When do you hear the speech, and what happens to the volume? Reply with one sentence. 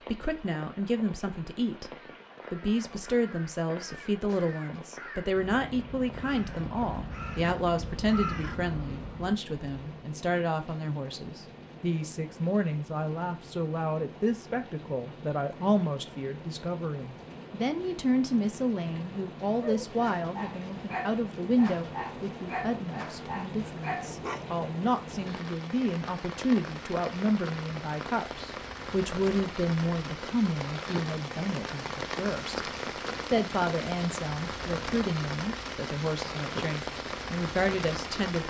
The speech can be heard from 0.1 to 38.4 s, at a steady volume.